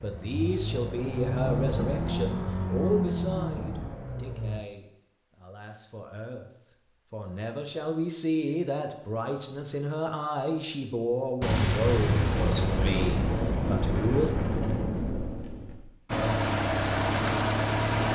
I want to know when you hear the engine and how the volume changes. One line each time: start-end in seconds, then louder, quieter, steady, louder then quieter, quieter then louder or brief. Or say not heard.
0.0-4.7 louder then quieter
16.1-18.1 brief.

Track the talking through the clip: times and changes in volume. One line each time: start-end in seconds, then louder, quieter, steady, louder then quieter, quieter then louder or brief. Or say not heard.
0.0-14.3 quieter then louder.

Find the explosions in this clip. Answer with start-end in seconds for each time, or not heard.
11.4-15.8.